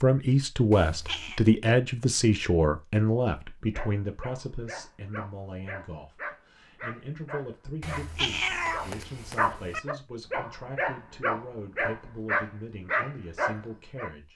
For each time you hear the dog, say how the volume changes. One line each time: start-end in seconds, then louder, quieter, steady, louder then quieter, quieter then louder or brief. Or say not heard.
3.7-14.1 louder.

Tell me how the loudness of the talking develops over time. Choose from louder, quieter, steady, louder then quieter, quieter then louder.
quieter.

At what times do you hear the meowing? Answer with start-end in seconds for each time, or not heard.
0.7-1.4, 7.8-9.8.